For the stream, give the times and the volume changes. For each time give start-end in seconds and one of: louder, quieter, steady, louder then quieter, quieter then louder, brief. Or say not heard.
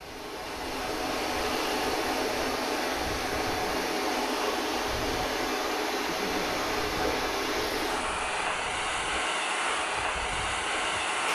0.0-11.3 steady.